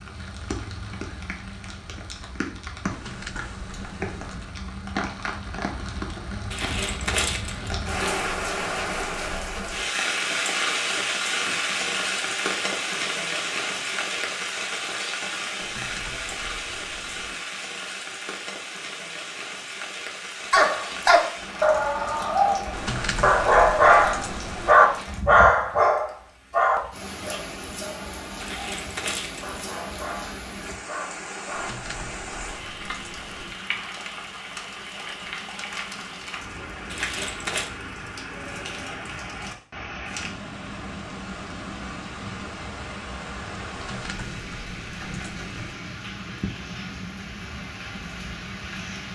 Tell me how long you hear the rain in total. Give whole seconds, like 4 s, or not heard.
49 s.